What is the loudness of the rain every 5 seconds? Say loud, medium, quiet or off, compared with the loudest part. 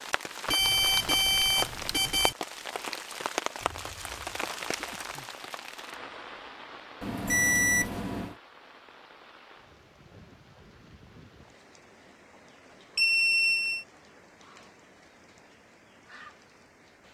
loud, medium, quiet, quiet.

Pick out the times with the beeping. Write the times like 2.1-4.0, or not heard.
0.5-2.4, 7.0-8.3, 12.9-13.8.